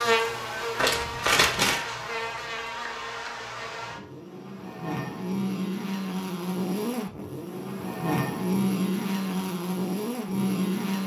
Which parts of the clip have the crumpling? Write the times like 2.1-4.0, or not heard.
0.8-1.9.